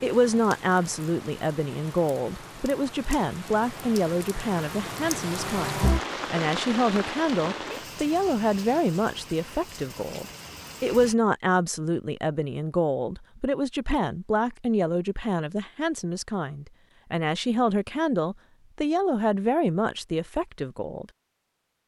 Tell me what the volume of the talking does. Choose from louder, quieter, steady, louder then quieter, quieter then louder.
steady.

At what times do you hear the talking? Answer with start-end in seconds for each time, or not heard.
0.0-21.1.